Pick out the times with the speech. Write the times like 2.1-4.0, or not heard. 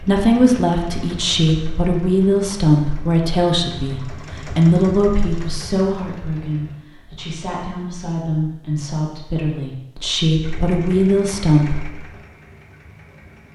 0.0-11.8.